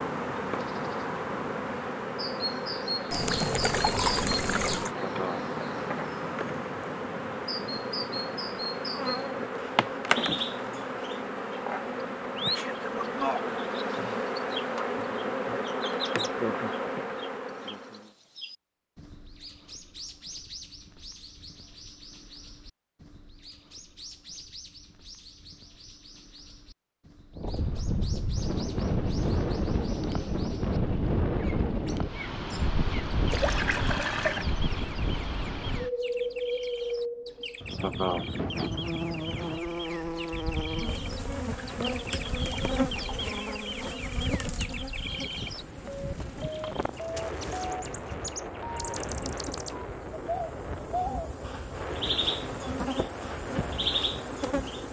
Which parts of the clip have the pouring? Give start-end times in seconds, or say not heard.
3.1-4.9, 33.3-34.5, 41.3-43.3.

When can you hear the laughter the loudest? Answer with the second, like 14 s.
38 s.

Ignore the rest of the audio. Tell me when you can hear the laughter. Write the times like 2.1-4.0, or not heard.
5.0-5.5, 37.8-38.2.